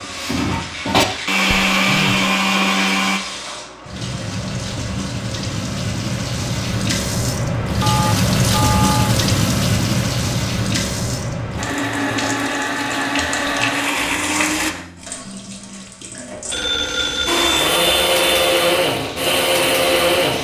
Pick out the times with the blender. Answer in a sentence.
You can hear the blender from 0.0 to 3.2 s, from 11.6 to 14.8 s and from 17.2 to 20.3 s.